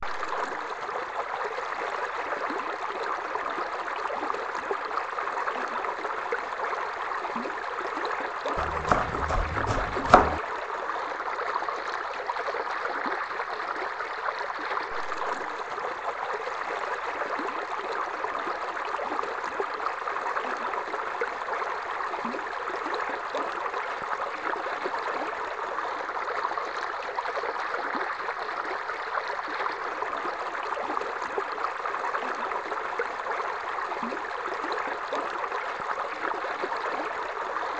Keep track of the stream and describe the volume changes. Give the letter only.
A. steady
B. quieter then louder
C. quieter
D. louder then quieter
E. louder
A.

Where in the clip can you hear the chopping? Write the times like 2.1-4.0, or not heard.
8.6-10.4.